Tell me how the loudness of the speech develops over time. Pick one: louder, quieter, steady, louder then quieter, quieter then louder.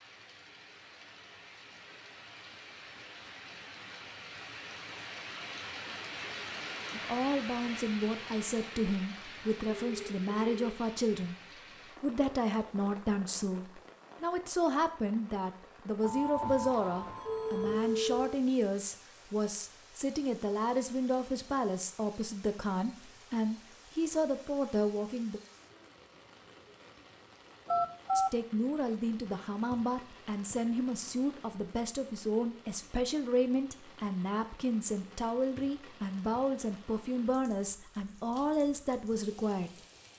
steady.